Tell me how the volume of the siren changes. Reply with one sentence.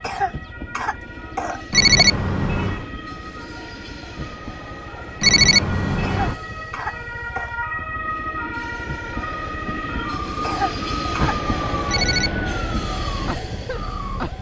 The volume of the siren goes up.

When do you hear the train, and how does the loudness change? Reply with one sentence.
The train can be heard from 0.0 to 14.3 s, getting louder.